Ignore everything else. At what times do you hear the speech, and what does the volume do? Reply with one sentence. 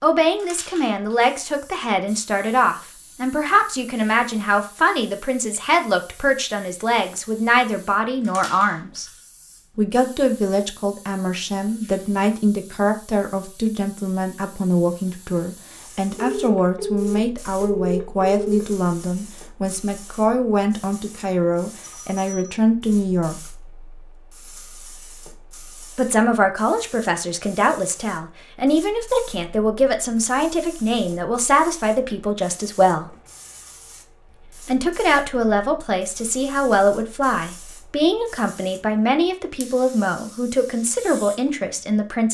You can hear the speech from 0.0 to 9.1 s, at a steady volume; from 9.8 to 23.4 s, at a steady volume; from 25.9 to 33.1 s, at a steady volume; and from 34.6 to 42.2 s, at a steady volume.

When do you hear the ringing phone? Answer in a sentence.
You can hear the ringing phone from 16.1 to 18.6 s and from 22.1 to 22.6 s.